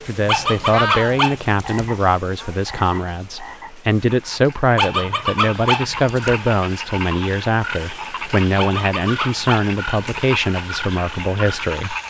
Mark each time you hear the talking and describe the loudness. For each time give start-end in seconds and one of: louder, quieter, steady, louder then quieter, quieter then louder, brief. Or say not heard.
0.1-11.9 steady.